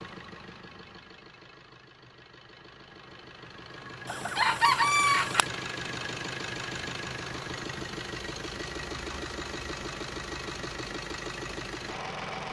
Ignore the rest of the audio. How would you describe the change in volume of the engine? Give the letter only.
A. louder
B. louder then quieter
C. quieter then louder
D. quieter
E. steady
A.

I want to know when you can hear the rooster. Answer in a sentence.
You can hear the rooster from 4.0 to 5.5 s.